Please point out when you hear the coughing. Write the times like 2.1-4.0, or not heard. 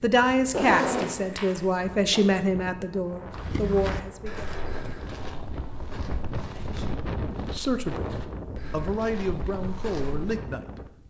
not heard.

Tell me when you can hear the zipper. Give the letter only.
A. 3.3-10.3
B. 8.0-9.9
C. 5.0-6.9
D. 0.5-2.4
D.